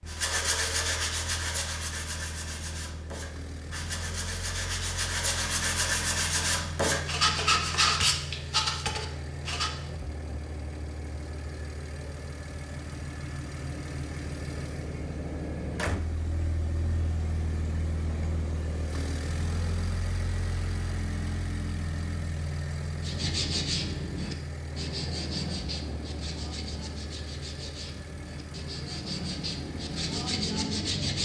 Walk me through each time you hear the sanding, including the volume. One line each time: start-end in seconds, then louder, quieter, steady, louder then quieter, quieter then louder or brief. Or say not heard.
0.1-9.7 quieter then louder
23.0-31.1 quieter then louder.